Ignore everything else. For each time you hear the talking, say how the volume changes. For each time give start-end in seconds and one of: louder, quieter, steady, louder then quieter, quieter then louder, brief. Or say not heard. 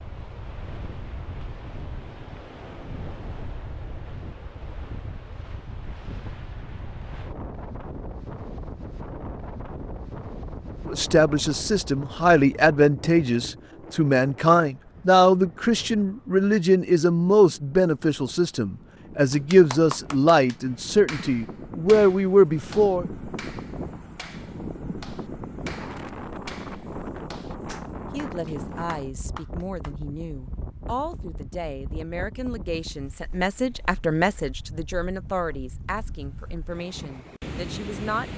10.8-23.1 steady
28.1-38.3 louder then quieter.